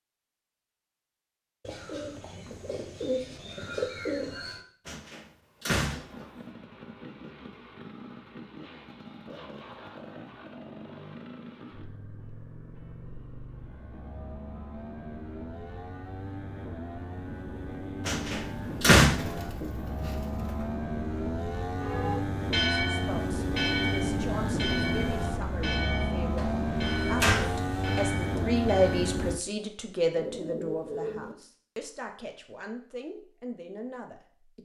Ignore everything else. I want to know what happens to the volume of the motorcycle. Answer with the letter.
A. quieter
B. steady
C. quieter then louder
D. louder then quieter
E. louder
E.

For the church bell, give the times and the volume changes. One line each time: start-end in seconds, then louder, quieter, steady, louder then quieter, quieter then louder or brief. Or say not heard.
21.8-29.1 quieter.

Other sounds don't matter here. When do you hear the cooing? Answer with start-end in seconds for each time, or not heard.
1.6-4.6, 19.0-20.8, 30.1-31.4.